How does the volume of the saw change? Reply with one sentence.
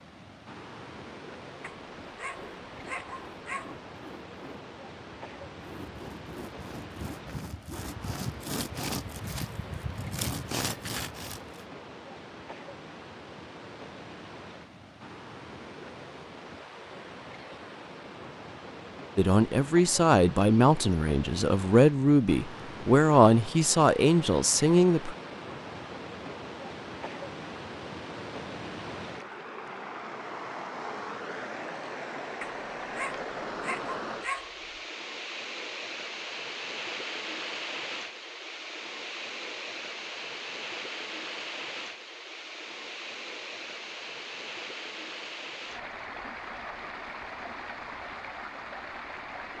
The loudness of the saw goes up.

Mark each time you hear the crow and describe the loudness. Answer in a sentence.
You can't hear the crow here.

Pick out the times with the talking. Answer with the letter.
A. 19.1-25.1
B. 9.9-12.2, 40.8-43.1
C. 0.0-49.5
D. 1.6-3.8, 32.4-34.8
A.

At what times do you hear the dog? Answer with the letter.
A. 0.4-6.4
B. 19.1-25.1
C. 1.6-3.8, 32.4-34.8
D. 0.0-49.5
C.